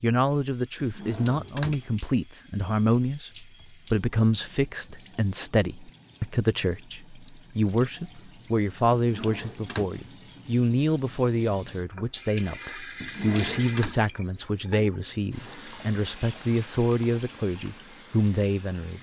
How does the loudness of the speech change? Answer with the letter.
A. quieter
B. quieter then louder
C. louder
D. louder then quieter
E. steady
E.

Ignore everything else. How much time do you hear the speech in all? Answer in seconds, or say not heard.
19 s.